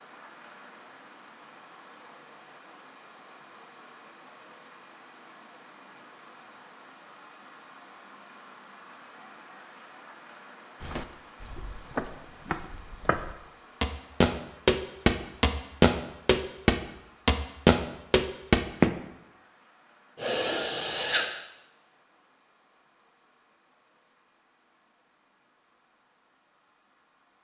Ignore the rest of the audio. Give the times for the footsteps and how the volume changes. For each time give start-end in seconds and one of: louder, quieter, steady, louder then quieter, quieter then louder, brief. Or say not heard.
10.8-18.9 louder.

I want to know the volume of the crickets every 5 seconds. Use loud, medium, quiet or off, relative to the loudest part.
loud, loud, loud, medium, quiet, quiet.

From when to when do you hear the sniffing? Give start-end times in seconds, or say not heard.
20.1-21.2.